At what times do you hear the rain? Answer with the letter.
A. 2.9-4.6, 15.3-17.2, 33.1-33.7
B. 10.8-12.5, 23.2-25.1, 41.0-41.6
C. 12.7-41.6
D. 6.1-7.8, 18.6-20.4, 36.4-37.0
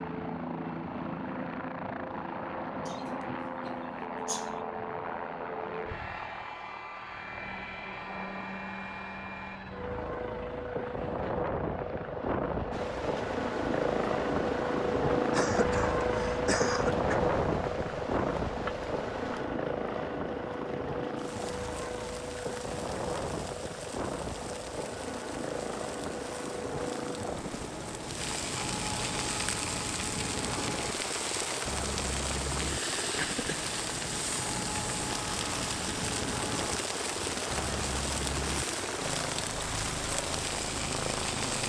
C.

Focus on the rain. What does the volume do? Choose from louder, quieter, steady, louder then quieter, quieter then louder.
louder.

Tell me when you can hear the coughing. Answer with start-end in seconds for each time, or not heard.
2.9-4.6, 15.3-17.2, 33.1-33.7.